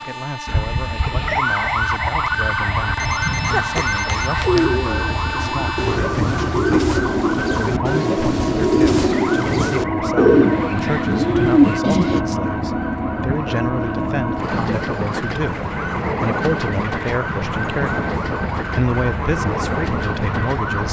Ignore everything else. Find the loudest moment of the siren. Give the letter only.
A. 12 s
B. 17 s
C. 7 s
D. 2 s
D.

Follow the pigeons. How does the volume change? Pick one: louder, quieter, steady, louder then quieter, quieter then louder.
louder.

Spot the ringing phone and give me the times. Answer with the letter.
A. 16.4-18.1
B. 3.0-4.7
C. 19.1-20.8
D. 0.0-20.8
B.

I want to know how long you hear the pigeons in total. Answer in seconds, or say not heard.
8 s.